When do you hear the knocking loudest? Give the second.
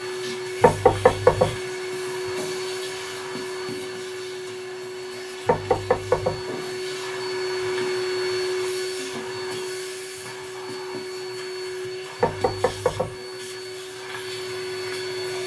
1 s.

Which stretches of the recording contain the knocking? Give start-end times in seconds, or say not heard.
0.6-1.6, 5.5-6.4, 12.2-13.2.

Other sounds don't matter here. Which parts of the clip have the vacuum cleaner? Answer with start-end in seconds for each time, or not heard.
0.0-15.4.